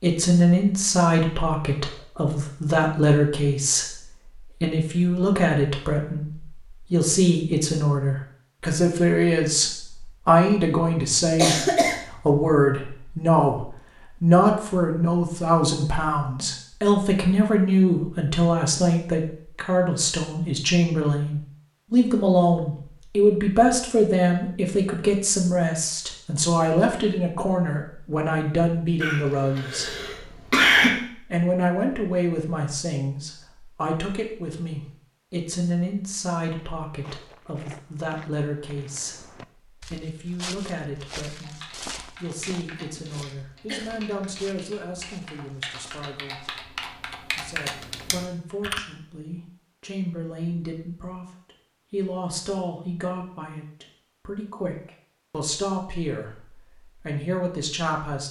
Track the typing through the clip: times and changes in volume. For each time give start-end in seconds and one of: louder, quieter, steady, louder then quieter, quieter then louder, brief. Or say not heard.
41.4-48.8 louder.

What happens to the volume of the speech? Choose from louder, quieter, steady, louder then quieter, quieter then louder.
quieter.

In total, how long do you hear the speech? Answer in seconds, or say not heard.
56 s.